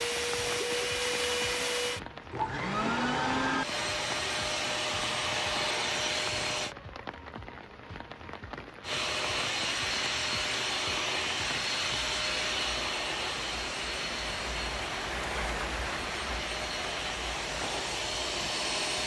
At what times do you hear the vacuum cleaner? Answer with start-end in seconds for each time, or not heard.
0.0-6.8, 8.8-19.0.